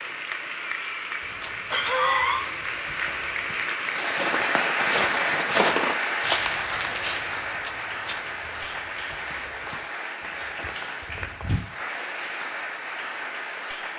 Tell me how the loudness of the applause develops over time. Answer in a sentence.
The loudness of the applause goes up, then down.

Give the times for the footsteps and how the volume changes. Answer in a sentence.
You can hear the footsteps from 1.2 to 11.6 s, getting louder then quieter.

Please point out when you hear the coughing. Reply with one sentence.
The coughing can be heard from 0.5 to 2.5 s.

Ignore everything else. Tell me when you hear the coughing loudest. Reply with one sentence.
The volume of the coughing peaks at 2 seconds.